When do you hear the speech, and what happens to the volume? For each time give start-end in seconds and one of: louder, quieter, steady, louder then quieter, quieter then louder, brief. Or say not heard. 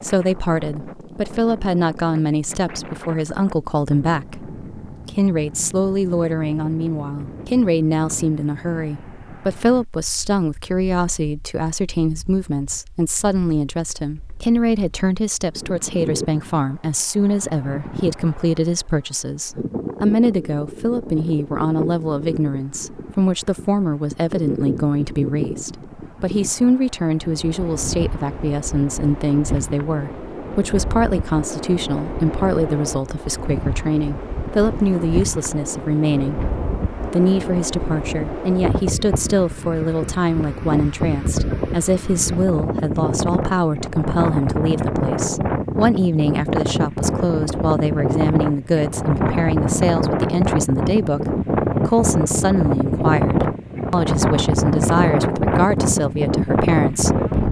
0.0-57.4 steady.